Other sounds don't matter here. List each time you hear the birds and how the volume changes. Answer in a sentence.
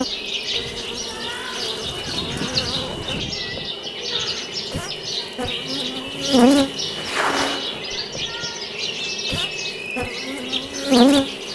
The birds can be heard from 0.0 to 11.5 s, at a steady volume.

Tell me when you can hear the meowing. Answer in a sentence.
You can hear the meowing from 1.8 to 3.8 s and from 8.0 to 8.4 s.